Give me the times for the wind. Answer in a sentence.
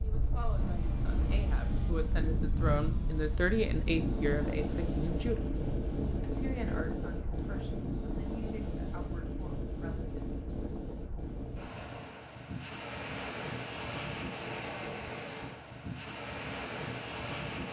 You can hear the wind from 0.0 to 17.6 s.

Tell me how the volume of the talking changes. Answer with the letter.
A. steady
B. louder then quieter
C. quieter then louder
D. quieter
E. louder
B.